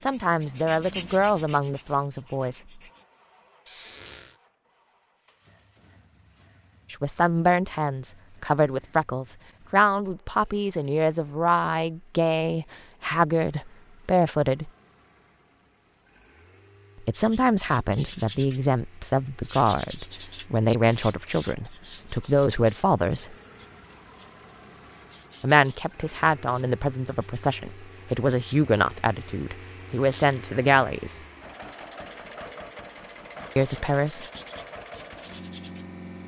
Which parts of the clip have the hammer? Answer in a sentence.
You can't hear the hammer here.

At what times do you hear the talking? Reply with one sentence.
You can hear the talking from 0.1 to 2.8 s, from 6.9 to 14.7 s, from 17.0 to 23.4 s, from 25.4 to 31.2 s and from 33.5 to 34.2 s.